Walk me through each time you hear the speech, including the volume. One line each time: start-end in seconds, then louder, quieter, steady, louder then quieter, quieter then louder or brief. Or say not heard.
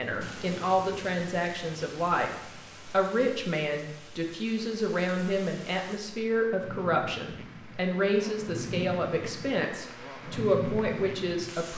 0.0-11.7 steady.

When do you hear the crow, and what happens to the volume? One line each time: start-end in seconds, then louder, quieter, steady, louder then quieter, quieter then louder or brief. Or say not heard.
not heard.